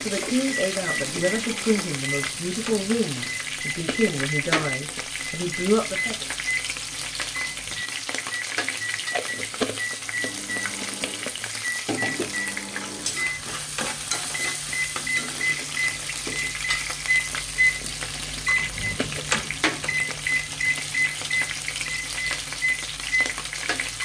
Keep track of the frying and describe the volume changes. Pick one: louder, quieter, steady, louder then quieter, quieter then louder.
steady.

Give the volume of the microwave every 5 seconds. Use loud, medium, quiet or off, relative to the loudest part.
medium, medium, medium, loud, loud.